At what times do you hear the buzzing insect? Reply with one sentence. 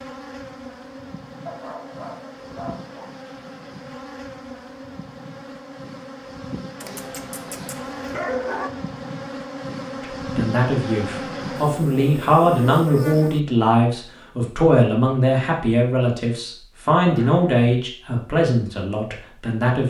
You can hear the buzzing insect from 0.0 to 13.4 s.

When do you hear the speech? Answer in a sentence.
You can hear the speech from 10.0 to 19.8 s.